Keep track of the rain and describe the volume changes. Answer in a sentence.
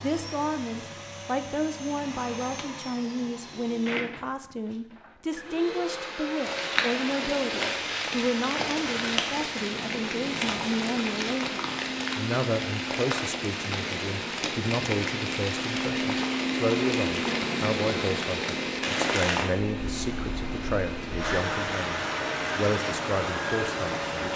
The volume of the rain stays about the same.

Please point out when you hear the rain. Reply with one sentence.
You can hear the rain from 6.3 to 24.3 s.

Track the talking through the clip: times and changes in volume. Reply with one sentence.
You can hear the talking from 0.0 to 24.3 s, at a steady volume.